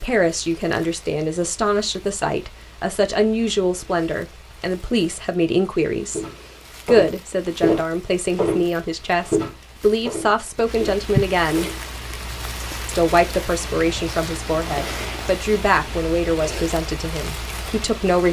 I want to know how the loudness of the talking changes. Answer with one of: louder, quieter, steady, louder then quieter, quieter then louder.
steady.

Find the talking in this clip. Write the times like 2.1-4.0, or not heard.
0.0-6.2, 6.8-11.7, 12.8-18.2.